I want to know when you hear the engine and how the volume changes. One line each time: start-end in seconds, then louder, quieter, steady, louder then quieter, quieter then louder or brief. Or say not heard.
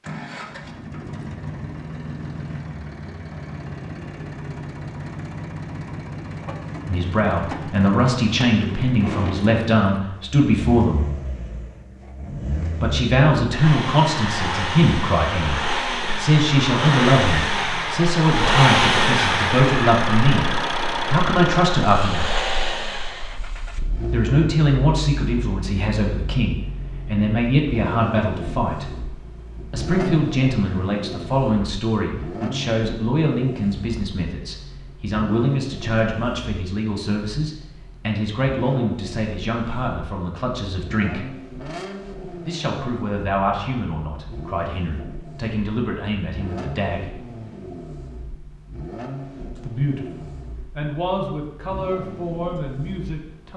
0.0-53.5 louder then quieter.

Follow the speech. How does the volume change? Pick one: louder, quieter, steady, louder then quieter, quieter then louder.
quieter.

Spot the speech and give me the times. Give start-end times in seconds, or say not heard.
6.8-11.1, 12.8-22.5, 24.1-28.9, 29.7-41.2, 42.5-47.1, 49.5-53.5.